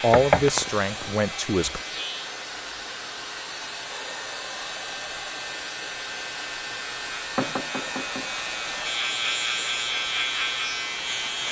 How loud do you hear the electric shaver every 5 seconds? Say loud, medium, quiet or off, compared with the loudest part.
medium, loud, loud.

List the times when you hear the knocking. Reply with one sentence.
The knocking can be heard from 0.1 to 1.1 s and from 7.3 to 8.9 s.